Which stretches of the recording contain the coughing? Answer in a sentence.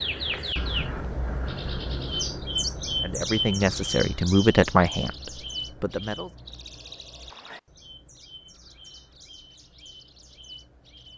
The coughing can't be heard in this clip.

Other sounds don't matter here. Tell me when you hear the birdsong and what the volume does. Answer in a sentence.
You can hear the birdsong from 0.0 to 11.1 s, getting quieter.